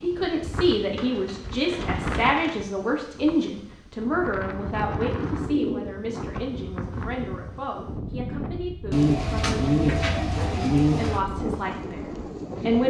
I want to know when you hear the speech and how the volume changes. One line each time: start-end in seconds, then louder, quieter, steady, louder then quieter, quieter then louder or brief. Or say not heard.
0.0-12.8 quieter.